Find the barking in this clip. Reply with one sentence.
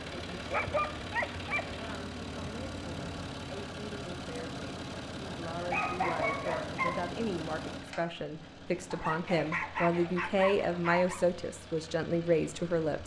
The barking can be heard from 0.5 to 1.6 s, from 5.7 to 7.1 s and from 8.9 to 11.2 s.